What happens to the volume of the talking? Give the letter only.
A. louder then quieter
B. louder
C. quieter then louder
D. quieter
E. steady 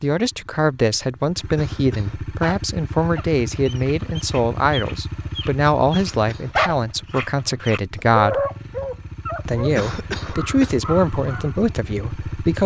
E.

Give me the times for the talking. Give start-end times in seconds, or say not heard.
0.0-8.4, 9.4-12.6.